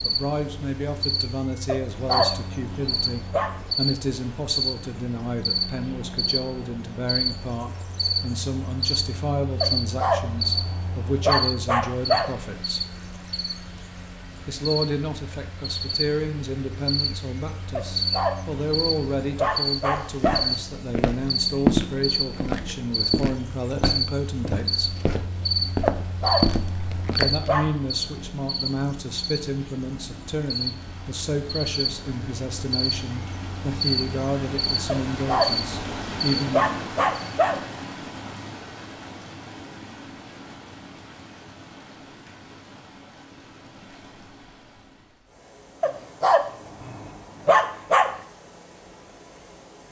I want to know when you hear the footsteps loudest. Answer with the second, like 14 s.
22 s.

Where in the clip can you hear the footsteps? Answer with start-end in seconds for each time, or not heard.
20.1-27.7.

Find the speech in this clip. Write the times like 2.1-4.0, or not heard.
0.0-12.9, 14.4-25.0, 27.1-36.6.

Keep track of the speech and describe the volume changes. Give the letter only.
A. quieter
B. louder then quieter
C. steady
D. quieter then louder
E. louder
C.